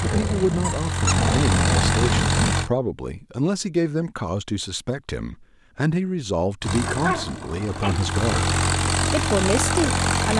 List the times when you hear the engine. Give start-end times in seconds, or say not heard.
0.0-2.7, 6.6-10.3.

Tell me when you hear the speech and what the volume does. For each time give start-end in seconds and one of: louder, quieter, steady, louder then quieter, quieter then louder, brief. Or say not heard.
0.0-10.3 steady.